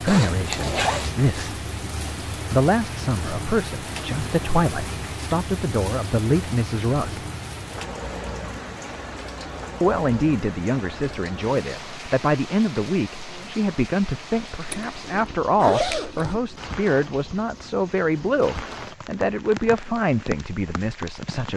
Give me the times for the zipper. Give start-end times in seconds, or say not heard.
0.1-1.2, 14.7-16.4.